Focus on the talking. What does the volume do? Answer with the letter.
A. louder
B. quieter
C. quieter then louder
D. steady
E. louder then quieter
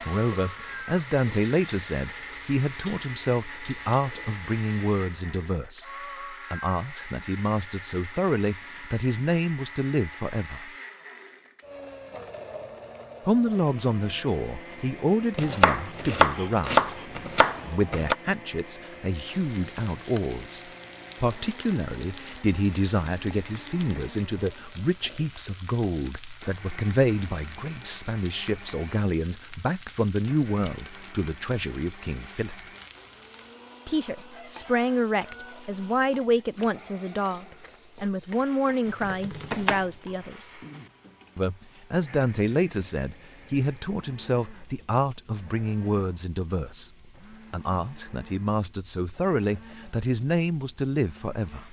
D.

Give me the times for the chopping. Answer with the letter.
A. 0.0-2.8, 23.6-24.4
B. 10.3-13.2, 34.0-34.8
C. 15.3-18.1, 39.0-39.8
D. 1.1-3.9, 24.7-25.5
C.